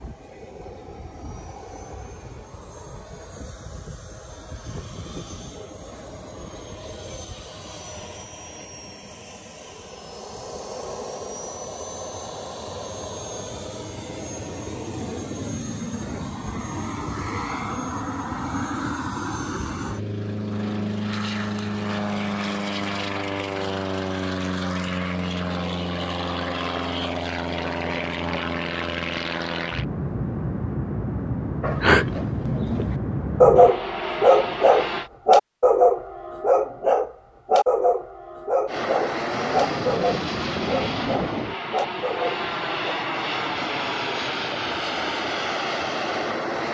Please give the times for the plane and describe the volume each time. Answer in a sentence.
The plane can be heard from 0.0 to 35.1 s, getting louder; and from 38.6 to 46.6 s, at a steady volume.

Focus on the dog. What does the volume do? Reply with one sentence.
The loudness of the dog goes down.